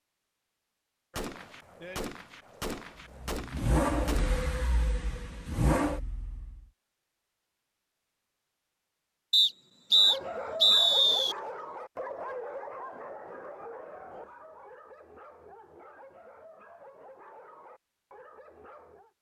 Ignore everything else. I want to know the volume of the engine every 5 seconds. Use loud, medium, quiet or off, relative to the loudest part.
loud, loud, off, off.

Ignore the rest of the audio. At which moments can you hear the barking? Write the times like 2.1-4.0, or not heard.
9.9-19.1.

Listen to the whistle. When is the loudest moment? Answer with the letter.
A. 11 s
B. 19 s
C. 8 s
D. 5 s
A.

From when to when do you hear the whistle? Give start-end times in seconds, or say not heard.
9.3-11.3.